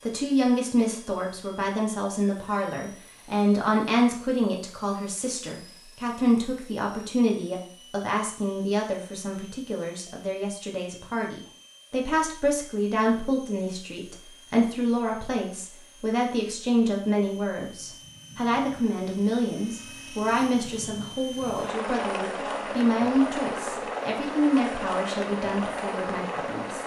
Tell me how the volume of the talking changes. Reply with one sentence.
The loudness of the talking stays about the same.